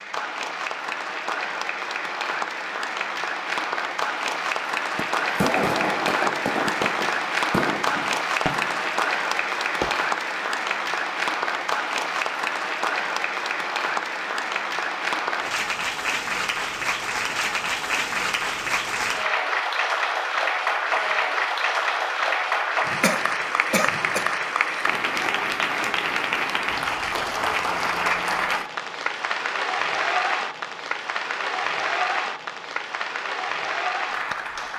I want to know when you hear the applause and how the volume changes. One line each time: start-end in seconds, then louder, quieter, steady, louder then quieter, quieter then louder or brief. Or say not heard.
0.0-34.7 steady.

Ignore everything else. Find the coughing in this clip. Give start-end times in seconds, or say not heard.
23.0-24.2.